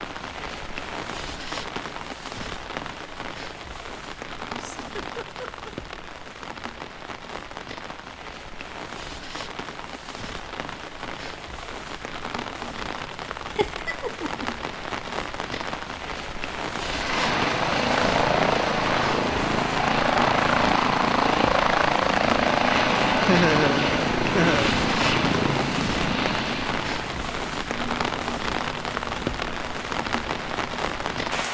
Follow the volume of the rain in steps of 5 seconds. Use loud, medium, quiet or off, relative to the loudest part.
medium, medium, medium, loud, loud, loud, loud.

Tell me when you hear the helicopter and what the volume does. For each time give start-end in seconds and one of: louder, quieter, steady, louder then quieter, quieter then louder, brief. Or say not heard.
16.8-31.4 quieter.